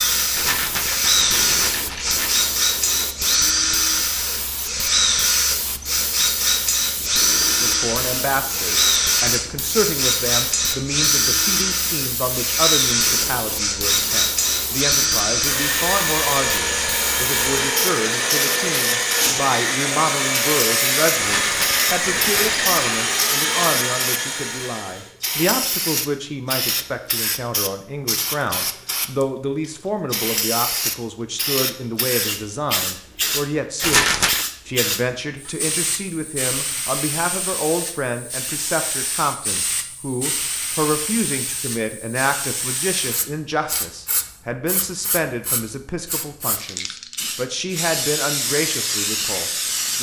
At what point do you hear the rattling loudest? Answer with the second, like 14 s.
34 s.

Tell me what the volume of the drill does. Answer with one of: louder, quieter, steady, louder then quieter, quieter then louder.
steady.